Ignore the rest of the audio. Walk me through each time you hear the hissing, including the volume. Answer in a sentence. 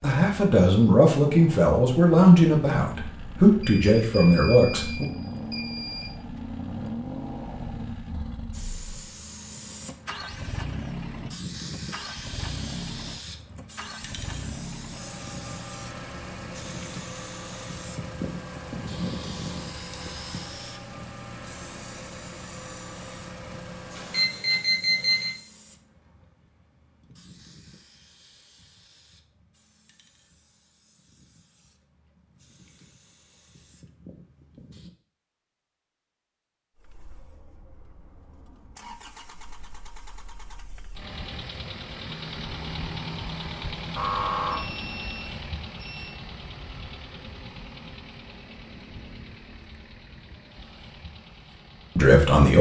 The hissing can be heard from 8.5 to 34.9 s, getting quieter.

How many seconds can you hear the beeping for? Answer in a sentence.
You can hear the beeping for 6 seconds altogether.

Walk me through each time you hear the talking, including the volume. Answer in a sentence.
The talking can be heard from 0.0 to 5.0 s, at a steady volume; and briefly from 52.0 to 52.5 s.